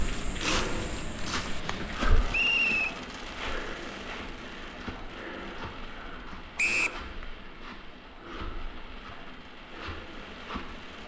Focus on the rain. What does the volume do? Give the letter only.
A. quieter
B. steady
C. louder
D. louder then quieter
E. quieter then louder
A.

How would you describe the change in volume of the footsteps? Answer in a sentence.
The loudness of the footsteps goes down.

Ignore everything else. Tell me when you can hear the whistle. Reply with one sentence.
The whistle can be heard from 2.3 to 2.9 s and from 6.5 to 7.0 s.